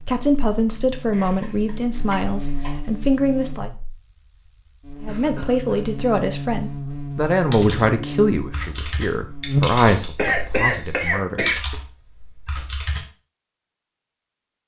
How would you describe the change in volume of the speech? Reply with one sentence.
The volume of the speech stays about the same.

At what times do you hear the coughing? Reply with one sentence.
The coughing can be heard from 1.1 to 2.8 s, from 5.0 to 5.8 s and from 10.2 to 11.6 s.